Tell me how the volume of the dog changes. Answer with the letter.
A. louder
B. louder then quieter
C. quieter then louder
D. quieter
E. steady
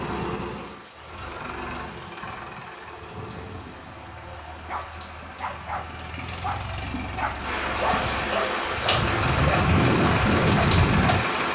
A.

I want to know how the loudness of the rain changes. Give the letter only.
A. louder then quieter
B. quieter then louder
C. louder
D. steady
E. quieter
C.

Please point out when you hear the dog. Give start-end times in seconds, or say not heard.
4.7-11.2.